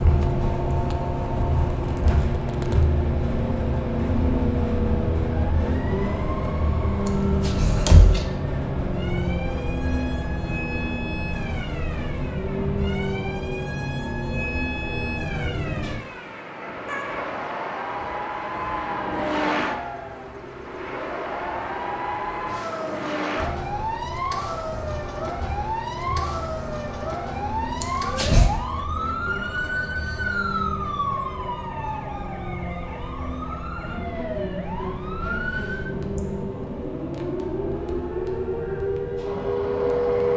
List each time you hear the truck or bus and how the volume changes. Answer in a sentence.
You can hear the truck or bus from 0.0 to 40.3 s, getting quieter.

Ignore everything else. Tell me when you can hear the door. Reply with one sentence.
You can hear the door from 7.5 to 8.2 s and from 27.8 to 28.5 s.